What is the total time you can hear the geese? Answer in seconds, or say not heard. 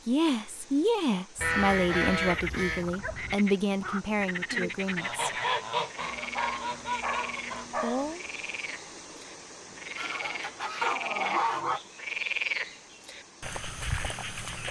6 s.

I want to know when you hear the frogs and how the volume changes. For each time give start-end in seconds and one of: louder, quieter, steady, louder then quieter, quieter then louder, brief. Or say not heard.
2.1-14.6 quieter then louder.